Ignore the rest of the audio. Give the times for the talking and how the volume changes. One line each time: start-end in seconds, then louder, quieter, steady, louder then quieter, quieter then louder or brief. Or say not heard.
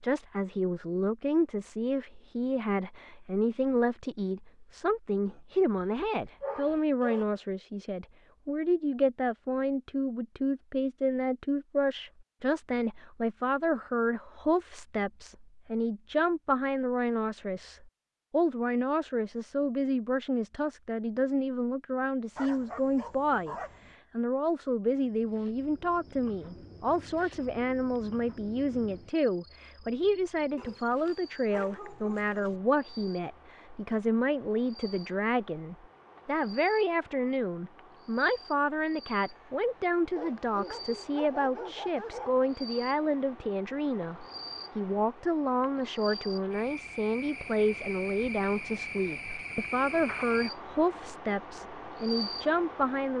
0.0-53.1 steady.